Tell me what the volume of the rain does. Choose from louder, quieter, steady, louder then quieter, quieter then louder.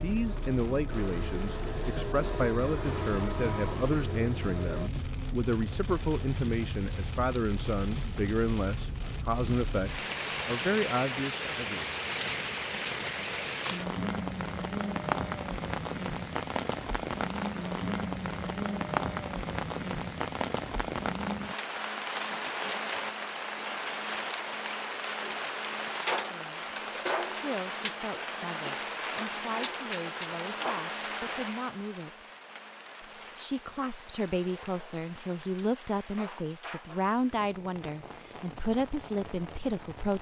louder then quieter.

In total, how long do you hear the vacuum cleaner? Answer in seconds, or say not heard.
5 s.